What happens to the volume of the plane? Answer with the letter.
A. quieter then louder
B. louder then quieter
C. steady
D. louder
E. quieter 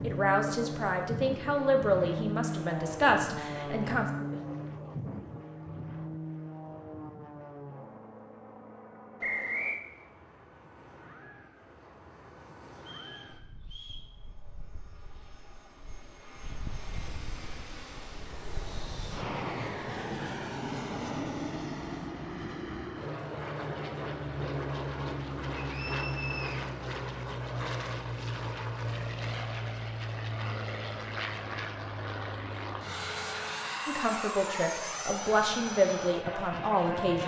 A.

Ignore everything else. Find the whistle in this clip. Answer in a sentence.
You can hear the whistle from 9.2 to 9.8 s, from 12.8 to 14.1 s and from 25.7 to 26.6 s.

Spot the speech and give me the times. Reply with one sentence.
You can hear the speech from 0.0 to 4.1 s and from 33.9 to 37.2 s.